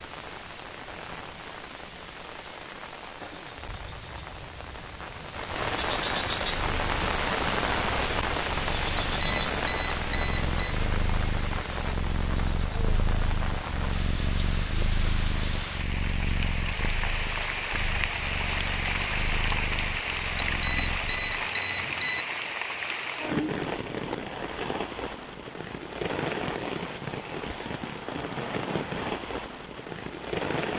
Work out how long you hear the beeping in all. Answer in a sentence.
You can hear the beeping for 4 seconds altogether.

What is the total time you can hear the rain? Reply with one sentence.
The rain can be heard for 31 seconds in total.